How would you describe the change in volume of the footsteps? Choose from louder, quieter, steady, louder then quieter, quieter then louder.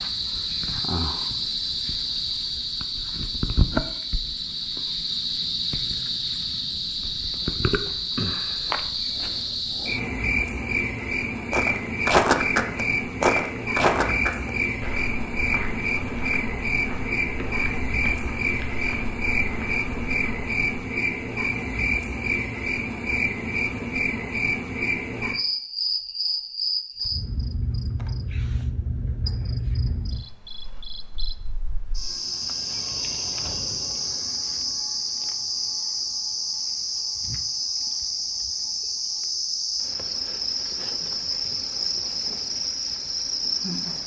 quieter.